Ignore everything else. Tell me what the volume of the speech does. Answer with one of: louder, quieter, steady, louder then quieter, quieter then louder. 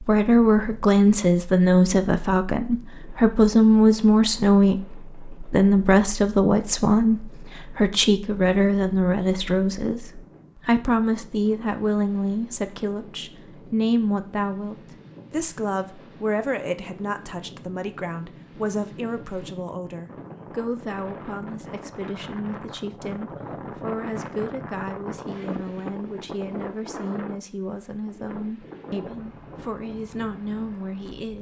quieter.